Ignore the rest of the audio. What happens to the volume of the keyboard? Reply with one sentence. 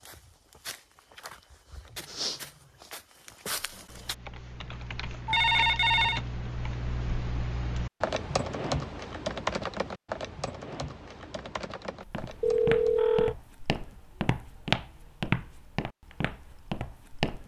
The loudness of the keyboard goes up, then down.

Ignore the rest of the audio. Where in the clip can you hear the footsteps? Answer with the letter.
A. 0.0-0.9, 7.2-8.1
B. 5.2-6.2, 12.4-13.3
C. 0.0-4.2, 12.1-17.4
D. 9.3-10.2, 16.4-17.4
C.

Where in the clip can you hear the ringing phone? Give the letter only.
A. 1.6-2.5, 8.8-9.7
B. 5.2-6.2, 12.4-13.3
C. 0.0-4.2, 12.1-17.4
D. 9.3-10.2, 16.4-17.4
B.